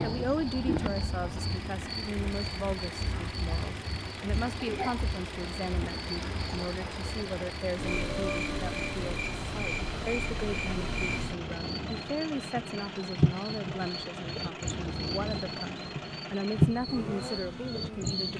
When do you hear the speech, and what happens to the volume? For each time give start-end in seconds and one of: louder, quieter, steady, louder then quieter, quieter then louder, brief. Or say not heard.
0.0-18.3 steady.